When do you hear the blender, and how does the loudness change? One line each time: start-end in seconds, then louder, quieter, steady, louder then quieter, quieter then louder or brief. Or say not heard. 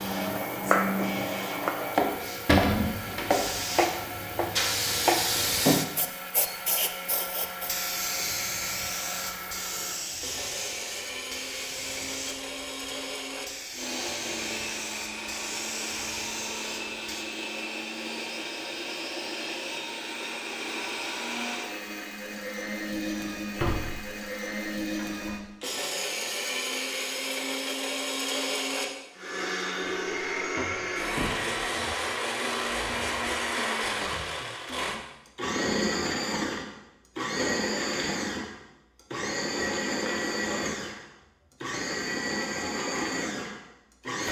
0.0-44.2 louder.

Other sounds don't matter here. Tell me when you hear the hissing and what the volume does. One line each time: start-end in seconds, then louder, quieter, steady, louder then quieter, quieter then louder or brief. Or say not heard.
0.0-17.2 louder then quieter.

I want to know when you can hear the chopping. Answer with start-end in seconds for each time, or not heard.
0.0-5.3.